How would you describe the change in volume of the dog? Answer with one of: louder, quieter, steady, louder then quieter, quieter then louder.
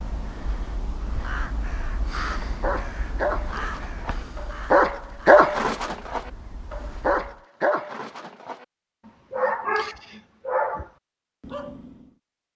louder then quieter.